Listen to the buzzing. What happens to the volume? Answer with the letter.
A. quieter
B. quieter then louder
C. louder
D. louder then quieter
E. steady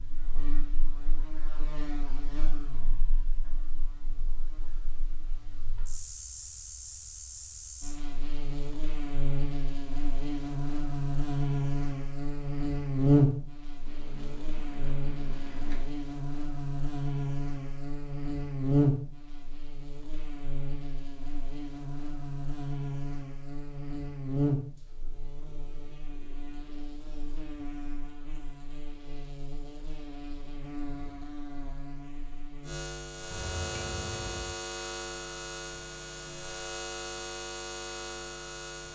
D.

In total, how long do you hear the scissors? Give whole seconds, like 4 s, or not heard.
3 s.